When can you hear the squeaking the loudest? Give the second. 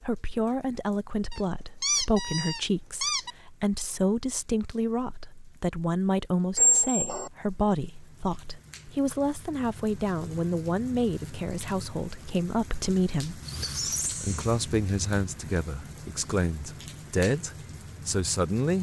7 s.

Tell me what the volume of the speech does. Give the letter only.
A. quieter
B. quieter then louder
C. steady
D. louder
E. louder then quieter
C.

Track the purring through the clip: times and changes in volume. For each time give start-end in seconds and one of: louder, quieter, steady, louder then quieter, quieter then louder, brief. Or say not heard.
not heard.